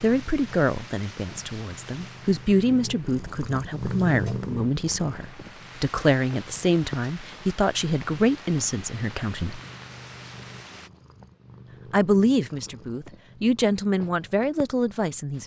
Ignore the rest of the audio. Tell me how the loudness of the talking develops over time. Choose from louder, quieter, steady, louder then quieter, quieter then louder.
steady.